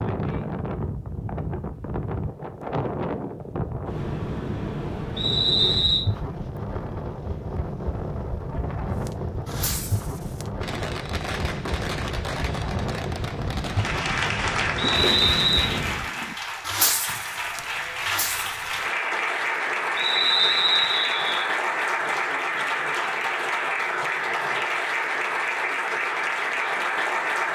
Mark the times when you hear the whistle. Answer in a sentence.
You can hear the whistle from 5.2 to 6.0 s, from 14.8 to 15.8 s and from 19.9 to 21.4 s.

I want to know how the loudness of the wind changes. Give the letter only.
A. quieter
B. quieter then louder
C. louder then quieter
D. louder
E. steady
E.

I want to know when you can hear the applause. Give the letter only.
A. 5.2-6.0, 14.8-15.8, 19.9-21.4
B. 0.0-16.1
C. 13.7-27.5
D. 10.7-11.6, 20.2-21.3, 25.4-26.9
C.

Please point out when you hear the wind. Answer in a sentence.
You can hear the wind from 0.0 to 16.1 s.